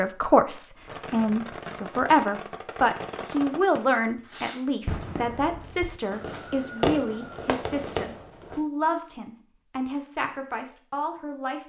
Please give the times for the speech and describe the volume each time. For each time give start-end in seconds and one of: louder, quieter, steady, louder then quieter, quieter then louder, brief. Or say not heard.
0.0-11.6 quieter.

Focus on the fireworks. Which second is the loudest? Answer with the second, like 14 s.
7 s.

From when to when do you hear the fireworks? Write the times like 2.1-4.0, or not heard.
0.8-8.6.